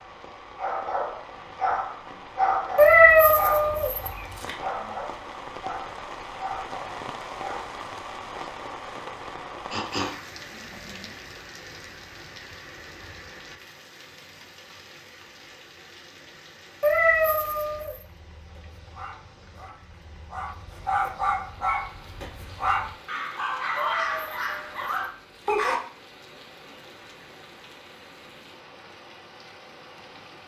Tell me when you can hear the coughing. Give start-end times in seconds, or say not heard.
9.7-11.1.